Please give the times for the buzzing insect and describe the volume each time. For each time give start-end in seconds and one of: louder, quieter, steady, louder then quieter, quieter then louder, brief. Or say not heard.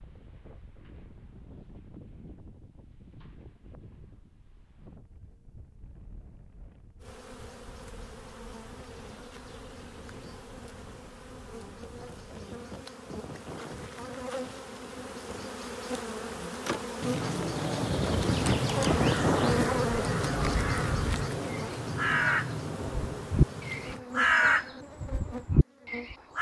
7.0-26.3 louder then quieter.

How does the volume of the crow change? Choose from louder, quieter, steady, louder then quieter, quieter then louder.
louder then quieter.